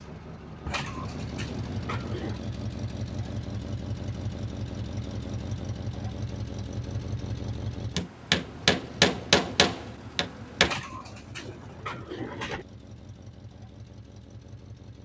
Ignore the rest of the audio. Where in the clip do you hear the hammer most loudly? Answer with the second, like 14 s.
9 s.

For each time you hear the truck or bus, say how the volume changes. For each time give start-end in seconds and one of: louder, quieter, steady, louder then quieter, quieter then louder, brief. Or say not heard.
0.0-15.0 quieter.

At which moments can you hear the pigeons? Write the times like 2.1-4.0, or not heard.
0.7-2.4, 10.6-12.7.